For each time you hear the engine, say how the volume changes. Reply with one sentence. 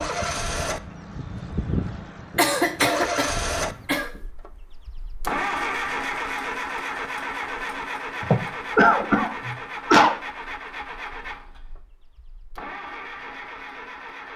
You can hear the engine from 0.0 to 14.3 s, getting quieter.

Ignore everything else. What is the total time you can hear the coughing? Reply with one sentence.
The coughing can be heard for 4 seconds in total.